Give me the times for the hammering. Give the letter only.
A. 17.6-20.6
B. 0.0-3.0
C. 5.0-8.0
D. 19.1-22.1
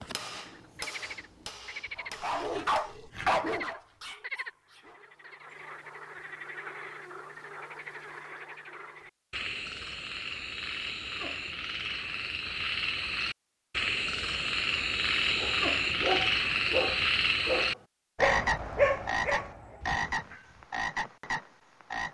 B.